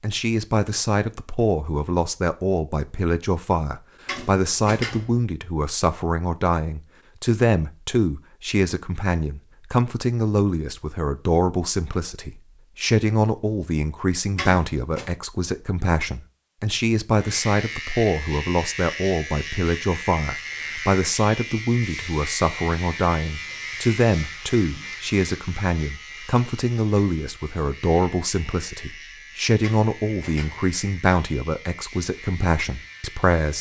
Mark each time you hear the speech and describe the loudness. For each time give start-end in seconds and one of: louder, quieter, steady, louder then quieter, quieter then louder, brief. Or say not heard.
0.0-33.5 steady.